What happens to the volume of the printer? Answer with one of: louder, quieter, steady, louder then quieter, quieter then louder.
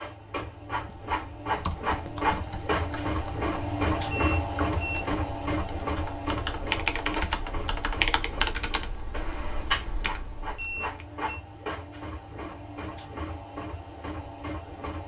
quieter.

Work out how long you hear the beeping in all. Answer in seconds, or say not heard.
2 s.